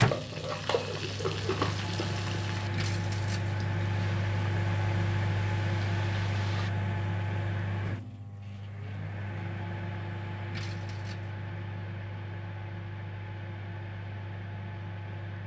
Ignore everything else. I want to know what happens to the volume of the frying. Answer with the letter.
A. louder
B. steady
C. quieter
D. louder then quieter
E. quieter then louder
C.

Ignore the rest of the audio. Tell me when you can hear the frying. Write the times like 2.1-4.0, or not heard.
0.0-6.7.